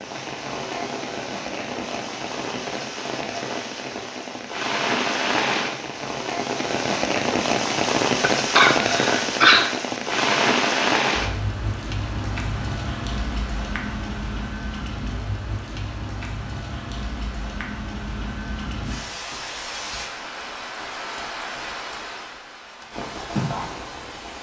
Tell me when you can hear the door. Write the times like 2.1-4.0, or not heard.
not heard.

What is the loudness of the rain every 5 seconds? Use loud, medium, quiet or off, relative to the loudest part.
medium, loud, loud, medium, medium.